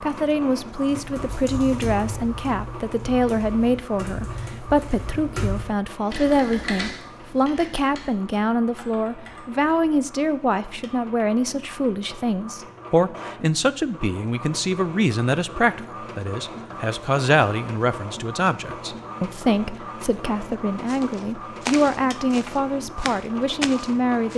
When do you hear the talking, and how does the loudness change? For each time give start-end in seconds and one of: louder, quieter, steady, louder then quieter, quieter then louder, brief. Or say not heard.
0.0-24.3 steady.